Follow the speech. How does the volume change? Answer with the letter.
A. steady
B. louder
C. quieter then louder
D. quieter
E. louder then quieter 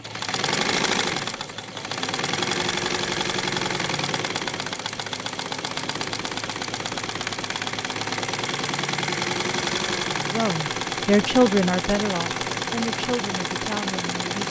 D.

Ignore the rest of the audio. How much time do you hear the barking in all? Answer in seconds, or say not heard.
not heard.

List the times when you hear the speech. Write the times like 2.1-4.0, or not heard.
10.3-14.4.